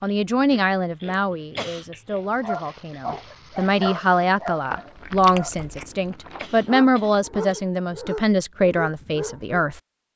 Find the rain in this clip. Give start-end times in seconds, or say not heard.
not heard.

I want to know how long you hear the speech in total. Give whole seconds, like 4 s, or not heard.
10 s.